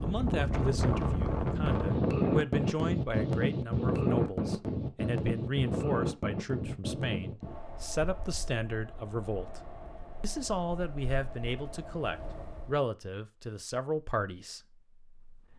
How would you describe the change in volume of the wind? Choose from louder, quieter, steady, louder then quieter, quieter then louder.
quieter.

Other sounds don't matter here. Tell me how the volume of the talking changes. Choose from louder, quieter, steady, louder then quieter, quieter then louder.
steady.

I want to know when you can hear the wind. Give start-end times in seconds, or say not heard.
0.0-12.8.